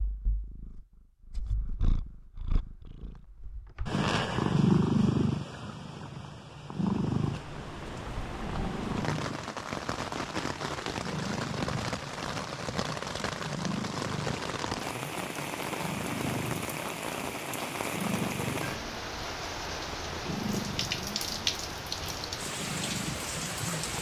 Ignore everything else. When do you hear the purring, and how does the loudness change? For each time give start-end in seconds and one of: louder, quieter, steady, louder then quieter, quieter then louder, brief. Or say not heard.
0.0-23.9 quieter.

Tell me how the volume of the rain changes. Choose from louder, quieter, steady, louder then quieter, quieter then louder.
steady.